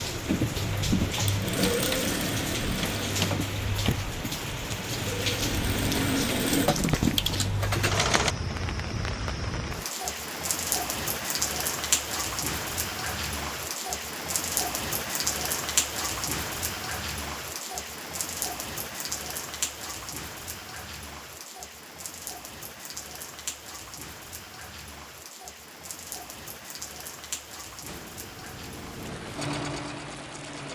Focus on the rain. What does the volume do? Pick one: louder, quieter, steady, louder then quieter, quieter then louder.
quieter.